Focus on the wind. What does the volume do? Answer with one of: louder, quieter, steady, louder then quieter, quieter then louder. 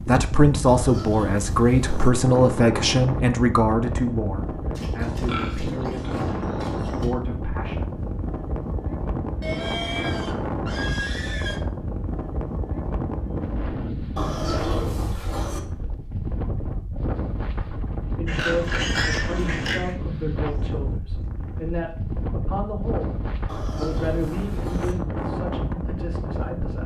steady.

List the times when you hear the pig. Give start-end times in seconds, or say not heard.
0.7-2.1, 4.8-7.0, 9.4-11.6, 14.2-15.6, 18.2-19.9, 23.4-24.9.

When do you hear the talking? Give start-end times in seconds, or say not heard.
0.1-8.0, 18.1-26.8.